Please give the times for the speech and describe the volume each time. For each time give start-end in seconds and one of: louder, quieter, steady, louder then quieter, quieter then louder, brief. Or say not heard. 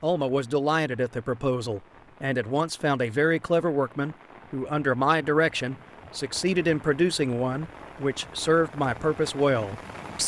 0.0-10.2 steady.